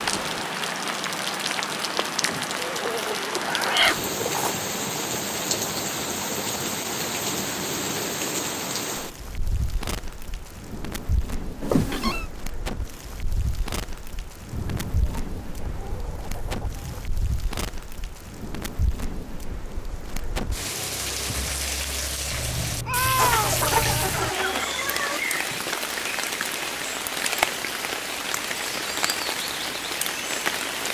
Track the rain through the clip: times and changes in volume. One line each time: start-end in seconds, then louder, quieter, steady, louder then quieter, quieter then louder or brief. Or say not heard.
0.0-30.9 quieter then louder.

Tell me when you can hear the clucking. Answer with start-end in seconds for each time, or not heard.
2.5-4.6, 14.5-17.1, 23.1-25.2.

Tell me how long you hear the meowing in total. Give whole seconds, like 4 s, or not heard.
3 s.